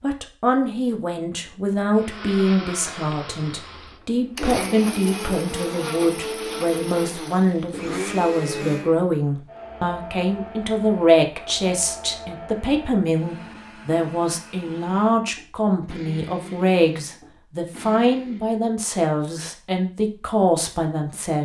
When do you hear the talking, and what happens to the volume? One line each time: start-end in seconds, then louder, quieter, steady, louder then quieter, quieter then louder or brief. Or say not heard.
0.0-21.4 steady.